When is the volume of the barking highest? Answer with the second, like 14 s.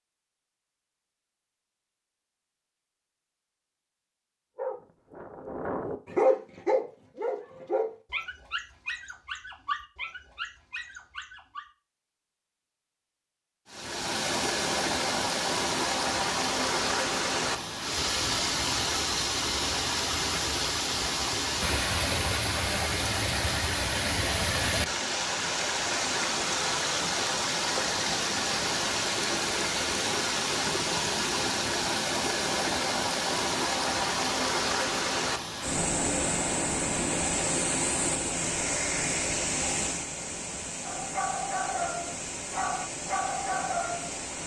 6 s.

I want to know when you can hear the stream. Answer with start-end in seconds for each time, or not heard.
13.7-44.4.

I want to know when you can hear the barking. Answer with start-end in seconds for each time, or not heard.
4.5-11.7, 40.9-44.2.